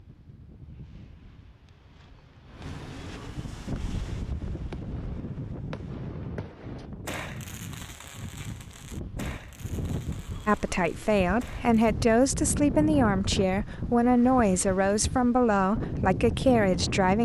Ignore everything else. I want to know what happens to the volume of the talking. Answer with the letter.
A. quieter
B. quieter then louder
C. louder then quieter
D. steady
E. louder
D.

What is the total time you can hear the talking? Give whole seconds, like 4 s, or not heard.
7 s.